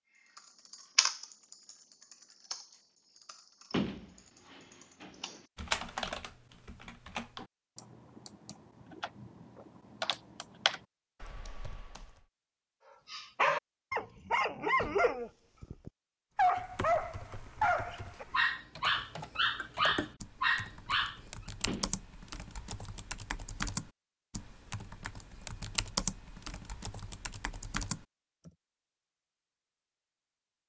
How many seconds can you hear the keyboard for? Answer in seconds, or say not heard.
24 s.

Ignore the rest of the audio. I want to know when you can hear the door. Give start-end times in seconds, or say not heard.
3.7-5.4, 14.8-15.2, 21.6-22.1.